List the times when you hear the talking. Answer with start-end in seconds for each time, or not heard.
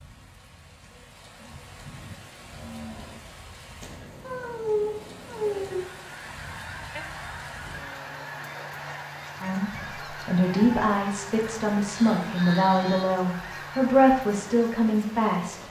9.4-15.6.